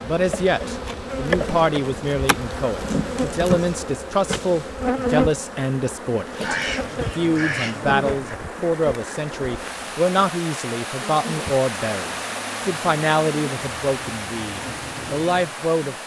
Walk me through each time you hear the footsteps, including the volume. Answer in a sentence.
You can't hear the footsteps here.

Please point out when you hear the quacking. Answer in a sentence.
The quacking can be heard from 6.4 to 8.4 s.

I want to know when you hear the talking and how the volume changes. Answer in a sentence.
You can hear the talking from 0.0 to 15.9 s, at a steady volume.